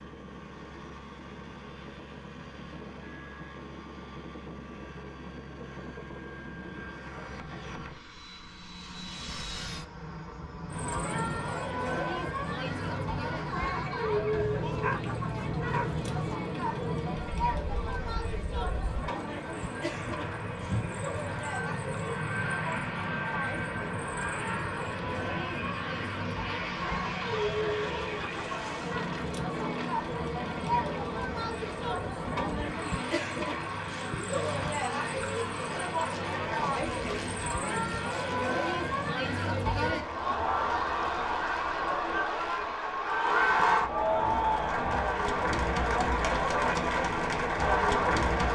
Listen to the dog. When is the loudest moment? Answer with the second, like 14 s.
15 s.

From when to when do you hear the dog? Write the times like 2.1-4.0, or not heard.
14.3-16.4.